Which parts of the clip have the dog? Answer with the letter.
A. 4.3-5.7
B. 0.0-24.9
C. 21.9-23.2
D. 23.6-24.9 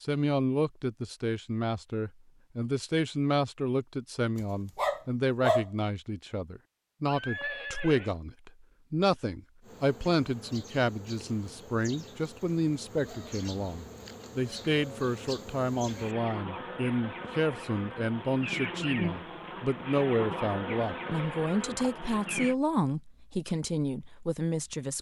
A.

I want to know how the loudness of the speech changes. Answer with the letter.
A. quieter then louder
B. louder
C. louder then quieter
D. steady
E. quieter
D.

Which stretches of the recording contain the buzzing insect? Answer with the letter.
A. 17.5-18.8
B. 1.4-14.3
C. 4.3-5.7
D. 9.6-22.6
D.